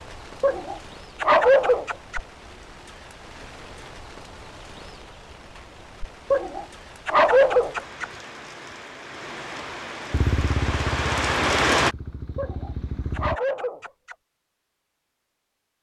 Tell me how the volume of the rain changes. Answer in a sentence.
The volume of the rain goes up.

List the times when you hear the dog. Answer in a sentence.
The dog can be heard from 0.4 to 2.2 s, from 6.3 to 8.1 s and from 12.3 to 14.2 s.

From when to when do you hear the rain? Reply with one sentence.
You can hear the rain from 0.0 to 11.9 s.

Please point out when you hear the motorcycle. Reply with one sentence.
You can hear the motorcycle from 10.1 to 13.4 s.